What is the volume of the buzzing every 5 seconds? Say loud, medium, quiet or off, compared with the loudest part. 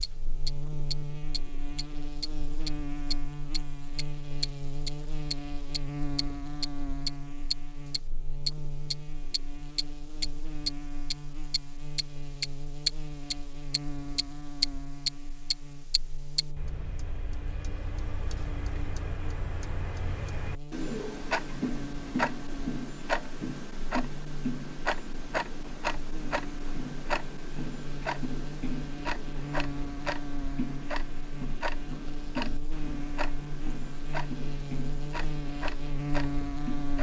medium, medium, medium, quiet, medium, medium, medium, loud.